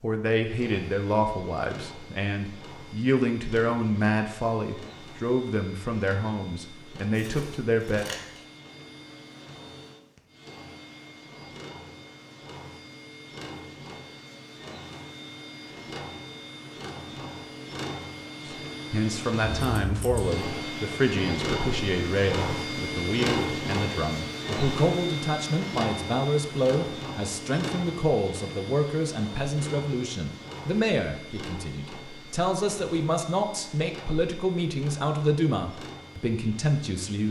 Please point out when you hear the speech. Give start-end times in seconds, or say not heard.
0.0-8.1, 18.4-37.2.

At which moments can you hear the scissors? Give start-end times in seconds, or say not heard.
7.2-8.4, 19.4-20.4.